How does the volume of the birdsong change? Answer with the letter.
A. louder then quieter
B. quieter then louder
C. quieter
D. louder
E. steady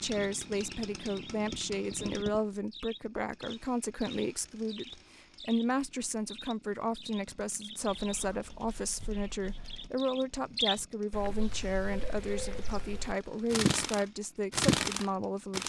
D.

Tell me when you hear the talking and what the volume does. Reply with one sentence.
You can hear the talking from 0.0 to 15.6 s, at a steady volume.